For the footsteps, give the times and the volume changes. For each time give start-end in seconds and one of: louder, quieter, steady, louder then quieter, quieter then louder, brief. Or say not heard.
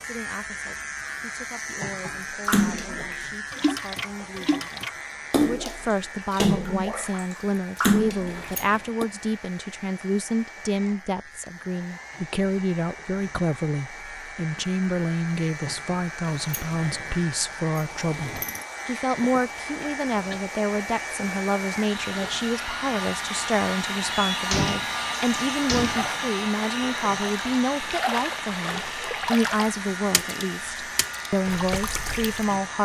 not heard.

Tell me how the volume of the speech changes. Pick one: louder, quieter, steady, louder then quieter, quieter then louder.
louder.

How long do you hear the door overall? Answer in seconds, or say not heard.
5 s.